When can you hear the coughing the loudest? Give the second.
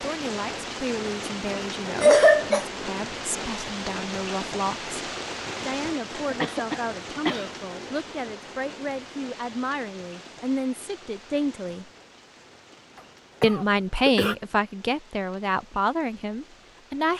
2 s.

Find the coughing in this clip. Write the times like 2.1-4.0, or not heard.
2.0-2.6, 6.1-7.6, 13.4-14.3.